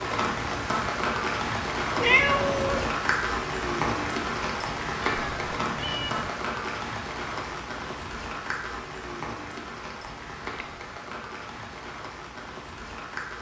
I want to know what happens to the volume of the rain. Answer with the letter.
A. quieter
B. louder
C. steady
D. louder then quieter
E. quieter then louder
A.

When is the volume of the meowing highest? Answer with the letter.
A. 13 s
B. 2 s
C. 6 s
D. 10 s
B.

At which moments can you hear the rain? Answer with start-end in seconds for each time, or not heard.
0.0-13.3.